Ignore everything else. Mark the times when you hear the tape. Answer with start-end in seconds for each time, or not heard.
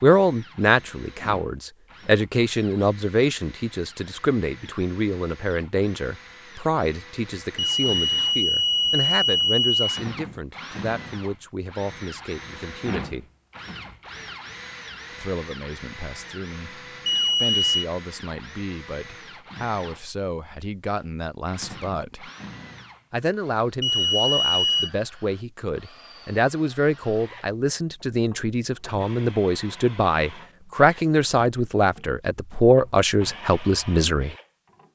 not heard.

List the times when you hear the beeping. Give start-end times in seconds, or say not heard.
7.5-10.1, 17.1-17.9, 23.8-24.9.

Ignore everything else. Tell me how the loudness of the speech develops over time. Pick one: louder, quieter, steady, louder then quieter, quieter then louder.
quieter then louder.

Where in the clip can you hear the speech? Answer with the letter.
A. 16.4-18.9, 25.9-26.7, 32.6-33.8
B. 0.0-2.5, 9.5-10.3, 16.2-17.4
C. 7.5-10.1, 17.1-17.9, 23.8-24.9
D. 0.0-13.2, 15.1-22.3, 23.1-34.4
D.